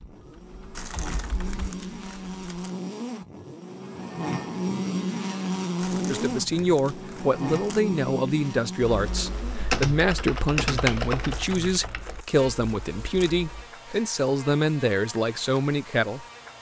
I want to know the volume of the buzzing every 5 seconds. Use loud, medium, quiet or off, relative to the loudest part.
loud, loud, quiet, quiet.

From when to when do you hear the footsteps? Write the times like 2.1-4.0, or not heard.
not heard.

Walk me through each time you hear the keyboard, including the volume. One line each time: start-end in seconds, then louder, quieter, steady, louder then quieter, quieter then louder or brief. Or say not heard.
0.0-1.6 brief
8.8-13.7 quieter.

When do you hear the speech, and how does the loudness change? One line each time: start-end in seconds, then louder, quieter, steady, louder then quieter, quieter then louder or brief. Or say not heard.
6.0-16.2 steady.